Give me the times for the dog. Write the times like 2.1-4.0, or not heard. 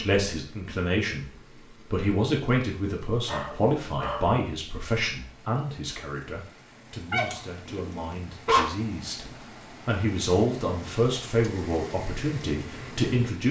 3.2-4.3, 7.1-8.7.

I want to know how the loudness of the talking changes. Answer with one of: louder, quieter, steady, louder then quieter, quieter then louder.
quieter then louder.